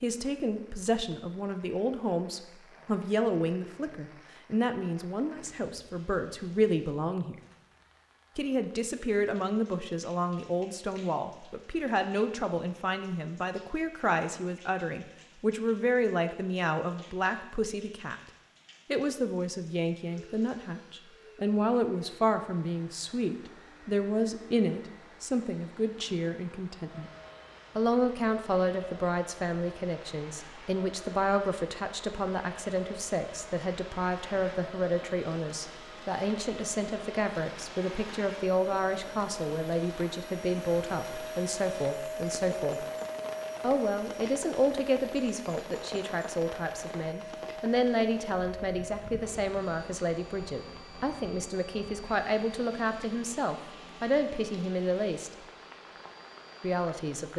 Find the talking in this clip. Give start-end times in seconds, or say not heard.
0.0-7.3, 8.3-18.1, 18.9-27.1, 27.8-42.9, 43.6-55.3, 56.6-57.3.